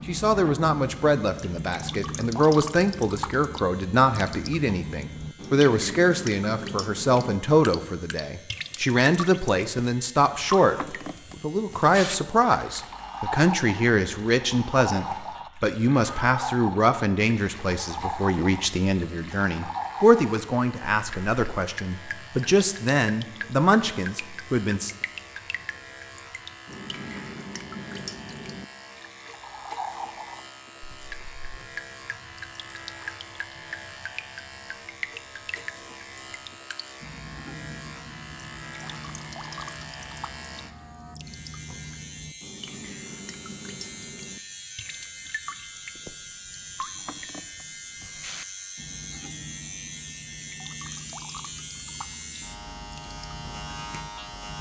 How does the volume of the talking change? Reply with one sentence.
The volume of the talking stays about the same.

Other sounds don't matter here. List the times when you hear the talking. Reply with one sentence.
You can hear the talking from 0.1 to 24.9 s.